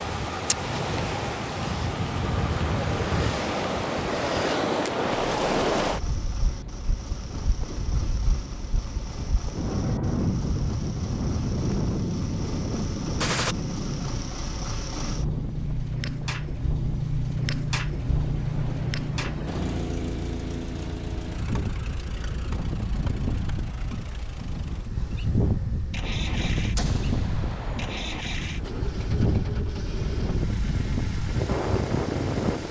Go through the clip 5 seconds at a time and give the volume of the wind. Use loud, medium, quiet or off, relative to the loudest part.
loud, loud, loud, medium, medium, loud, loud.